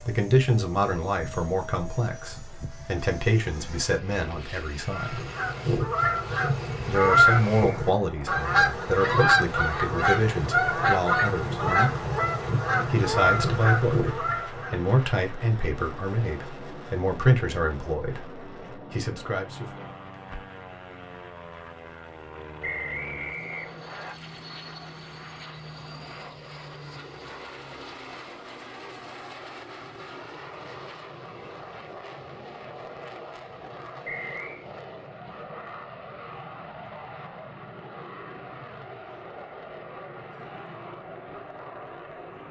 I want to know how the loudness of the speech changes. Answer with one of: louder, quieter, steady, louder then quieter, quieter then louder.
steady.